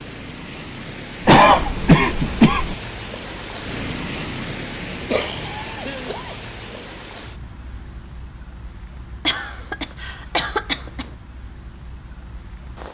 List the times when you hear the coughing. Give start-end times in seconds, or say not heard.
1.2-2.8, 5.1-6.3, 9.2-11.1.